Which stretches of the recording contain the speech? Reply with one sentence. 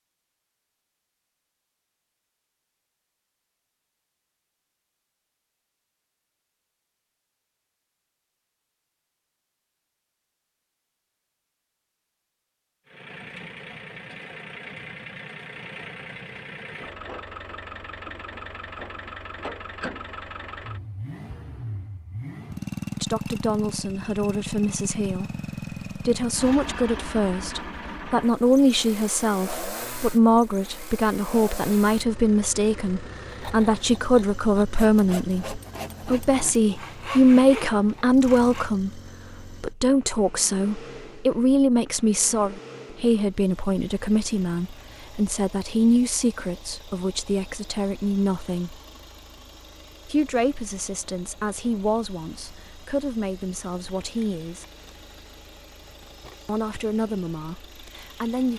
You can hear the speech from 23.0 to 48.8 s, from 50.0 to 54.6 s and from 56.5 to 58.5 s.